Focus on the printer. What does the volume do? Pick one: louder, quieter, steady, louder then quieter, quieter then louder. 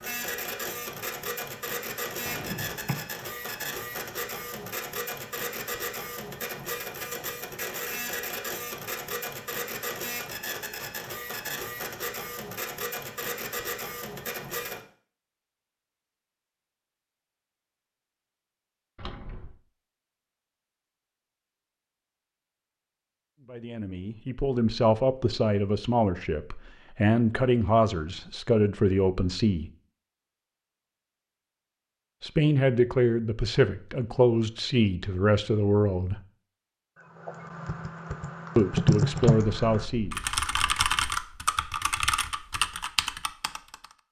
steady.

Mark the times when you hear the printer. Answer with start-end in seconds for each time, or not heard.
0.0-14.8.